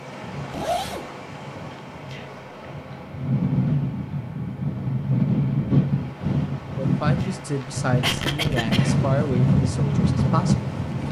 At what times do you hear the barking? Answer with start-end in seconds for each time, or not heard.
not heard.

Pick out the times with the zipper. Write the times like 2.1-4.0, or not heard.
0.5-1.1.